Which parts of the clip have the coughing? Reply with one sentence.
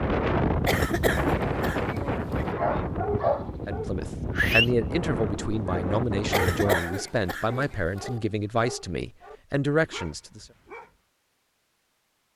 You can hear the coughing from 0.6 to 2.5 s and from 6.3 to 8.1 s.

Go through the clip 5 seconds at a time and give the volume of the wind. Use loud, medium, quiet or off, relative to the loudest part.
loud, loud, off.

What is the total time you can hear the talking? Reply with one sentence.
You can hear the talking for 7 seconds altogether.